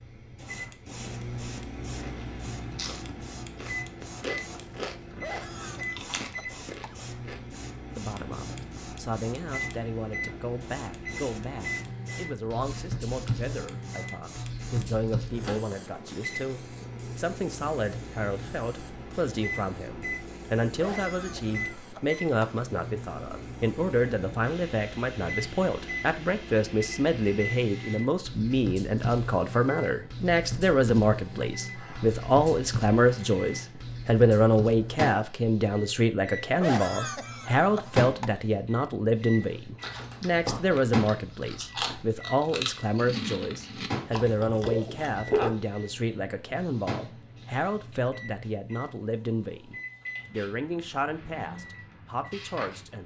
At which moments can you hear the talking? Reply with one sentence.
The talking can be heard from 8.0 to 53.0 s.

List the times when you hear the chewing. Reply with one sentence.
You can hear the chewing from 1.9 to 7.5 s and from 39.8 to 45.5 s.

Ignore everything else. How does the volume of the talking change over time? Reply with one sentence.
The loudness of the talking goes up, then down.